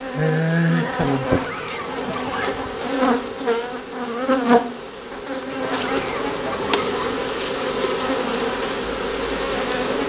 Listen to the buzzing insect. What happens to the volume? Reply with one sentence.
The loudness of the buzzing insect stays about the same.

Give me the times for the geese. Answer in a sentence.
The geese can be heard from 1.1 to 2.7 s and from 5.5 to 7.2 s.